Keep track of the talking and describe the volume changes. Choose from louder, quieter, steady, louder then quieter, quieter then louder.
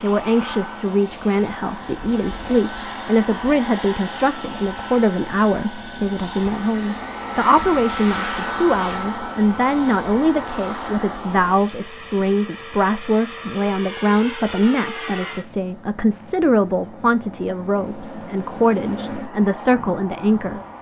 steady.